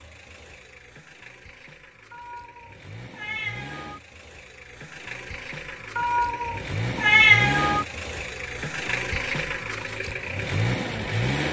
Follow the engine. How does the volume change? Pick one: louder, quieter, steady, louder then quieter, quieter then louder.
louder.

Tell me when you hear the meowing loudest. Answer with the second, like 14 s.
7 s.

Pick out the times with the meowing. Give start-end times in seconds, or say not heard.
2.1-4.0, 6.0-7.8.